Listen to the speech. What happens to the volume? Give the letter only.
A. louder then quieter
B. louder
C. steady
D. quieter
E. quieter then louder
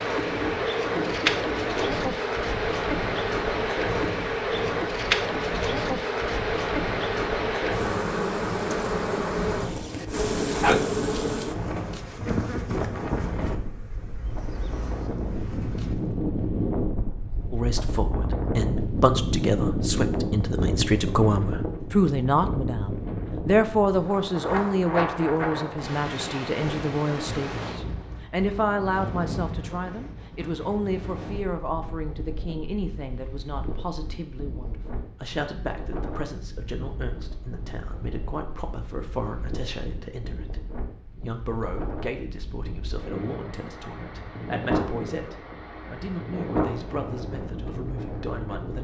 D.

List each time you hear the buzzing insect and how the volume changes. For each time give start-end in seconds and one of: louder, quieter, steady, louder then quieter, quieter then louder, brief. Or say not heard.
0.0-15.9 quieter.